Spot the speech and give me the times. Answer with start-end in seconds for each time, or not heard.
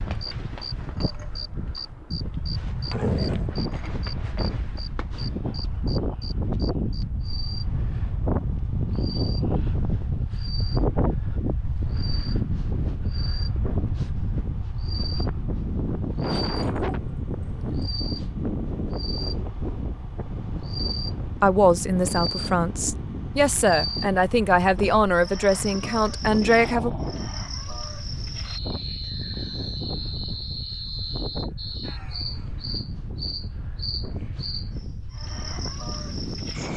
21.4-26.9.